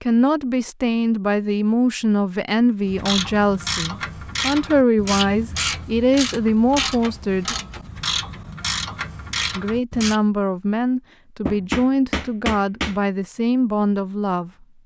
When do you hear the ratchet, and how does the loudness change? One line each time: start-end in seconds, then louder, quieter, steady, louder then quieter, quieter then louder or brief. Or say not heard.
2.9-10.2 steady.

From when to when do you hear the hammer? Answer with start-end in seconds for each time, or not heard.
11.4-12.9.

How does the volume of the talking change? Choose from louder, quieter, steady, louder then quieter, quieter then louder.
steady.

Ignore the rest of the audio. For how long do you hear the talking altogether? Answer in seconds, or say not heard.
13 s.